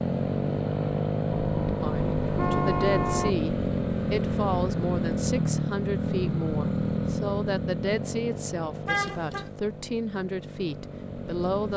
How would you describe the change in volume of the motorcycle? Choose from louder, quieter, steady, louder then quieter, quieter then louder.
quieter.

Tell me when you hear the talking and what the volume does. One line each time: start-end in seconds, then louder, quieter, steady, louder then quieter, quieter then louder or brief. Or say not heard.
1.8-11.7 steady.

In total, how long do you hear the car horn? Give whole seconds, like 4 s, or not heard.
3 s.